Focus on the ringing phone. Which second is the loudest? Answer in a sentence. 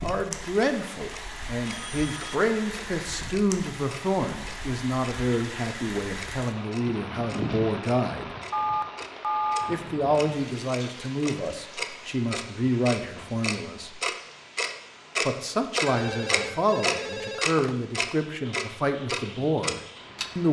The volume of the ringing phone peaks at 9 seconds.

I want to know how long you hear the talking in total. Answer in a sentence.
The talking can be heard for 18 seconds in total.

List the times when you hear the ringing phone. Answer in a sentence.
The ringing phone can be heard from 1.6 to 2.4 s, from 8.5 to 9.8 s and from 15.8 to 17.8 s.